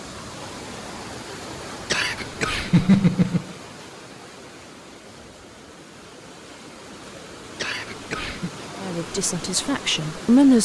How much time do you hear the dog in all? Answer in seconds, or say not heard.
not heard.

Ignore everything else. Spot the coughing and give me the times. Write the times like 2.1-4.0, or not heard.
1.9-3.5, 7.5-8.5.